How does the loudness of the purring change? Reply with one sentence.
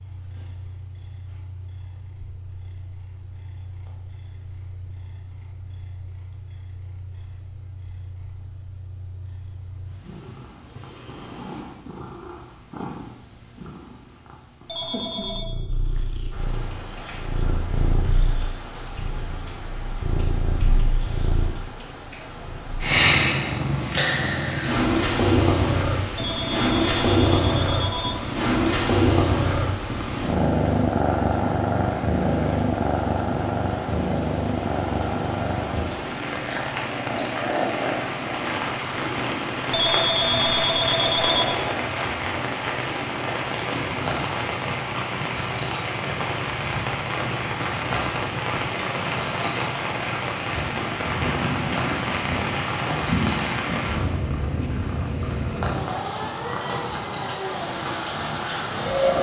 The loudness of the purring goes up, then down.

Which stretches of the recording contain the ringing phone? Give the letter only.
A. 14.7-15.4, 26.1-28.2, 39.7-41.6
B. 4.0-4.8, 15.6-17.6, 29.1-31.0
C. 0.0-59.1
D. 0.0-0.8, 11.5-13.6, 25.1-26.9
A.